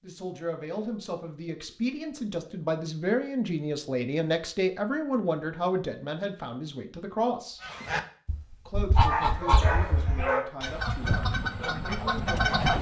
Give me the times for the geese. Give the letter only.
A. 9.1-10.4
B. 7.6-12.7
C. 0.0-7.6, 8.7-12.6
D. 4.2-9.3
B.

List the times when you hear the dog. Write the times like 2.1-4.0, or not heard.
9.1-10.4.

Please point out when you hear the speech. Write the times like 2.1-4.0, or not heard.
0.0-7.6, 8.7-12.6.